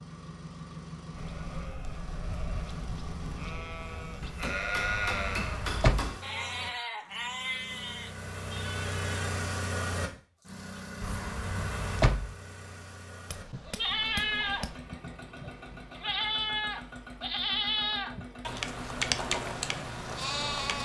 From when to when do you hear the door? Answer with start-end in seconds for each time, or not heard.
4.8-6.2, 11.0-12.3.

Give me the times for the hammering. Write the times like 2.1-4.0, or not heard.
4.2-6.3, 13.2-14.8.